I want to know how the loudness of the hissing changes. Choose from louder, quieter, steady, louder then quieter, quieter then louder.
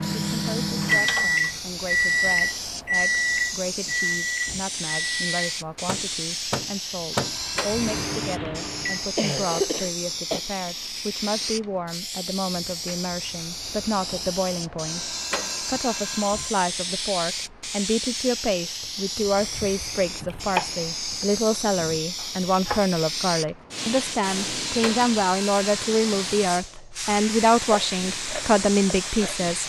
steady.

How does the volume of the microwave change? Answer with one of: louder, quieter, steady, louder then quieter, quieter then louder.
quieter.